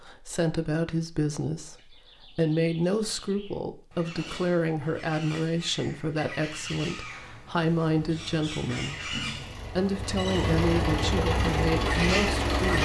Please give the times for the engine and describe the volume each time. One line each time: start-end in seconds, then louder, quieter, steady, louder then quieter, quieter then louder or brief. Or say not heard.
7.8-12.8 louder.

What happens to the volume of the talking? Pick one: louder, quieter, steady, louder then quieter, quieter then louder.
steady.